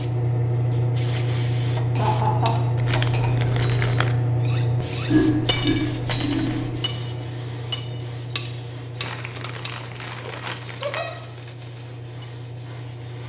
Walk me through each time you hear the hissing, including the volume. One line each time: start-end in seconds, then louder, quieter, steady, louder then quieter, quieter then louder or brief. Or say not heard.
0.0-13.2 quieter.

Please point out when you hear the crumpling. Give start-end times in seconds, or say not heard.
2.8-4.2, 9.0-11.0.